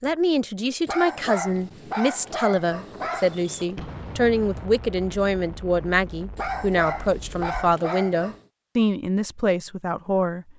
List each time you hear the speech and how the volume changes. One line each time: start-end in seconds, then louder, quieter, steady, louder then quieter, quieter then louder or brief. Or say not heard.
0.0-10.4 steady.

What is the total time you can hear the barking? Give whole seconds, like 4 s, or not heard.
5 s.